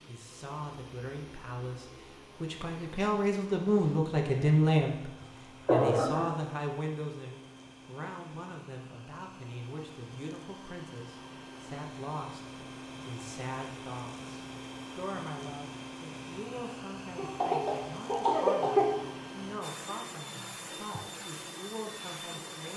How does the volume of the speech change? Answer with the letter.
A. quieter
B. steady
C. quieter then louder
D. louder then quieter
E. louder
A.